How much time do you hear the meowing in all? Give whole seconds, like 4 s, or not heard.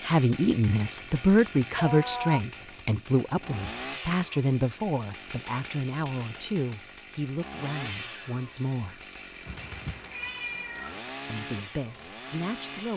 2 s.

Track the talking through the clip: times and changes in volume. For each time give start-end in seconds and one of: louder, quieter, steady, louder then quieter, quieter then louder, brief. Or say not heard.
0.0-9.0 quieter
11.2-12.9 brief.